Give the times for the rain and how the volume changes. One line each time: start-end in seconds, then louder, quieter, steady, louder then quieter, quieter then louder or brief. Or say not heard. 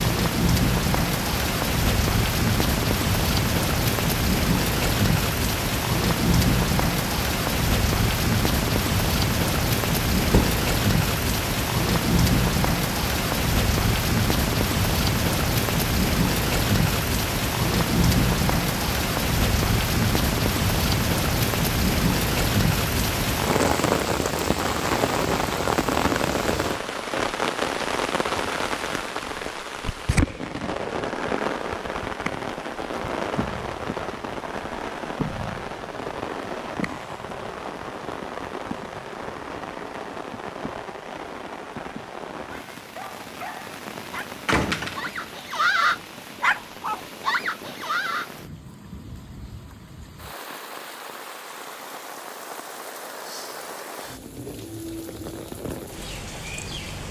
0.0-57.0 quieter.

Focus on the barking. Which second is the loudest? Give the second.
46 s.